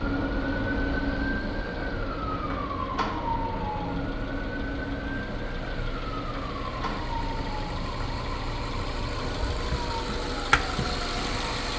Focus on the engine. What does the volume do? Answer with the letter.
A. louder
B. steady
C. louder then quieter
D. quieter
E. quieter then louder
A.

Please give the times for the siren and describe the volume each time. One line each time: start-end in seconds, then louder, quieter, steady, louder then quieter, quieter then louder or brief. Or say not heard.
0.0-11.7 quieter.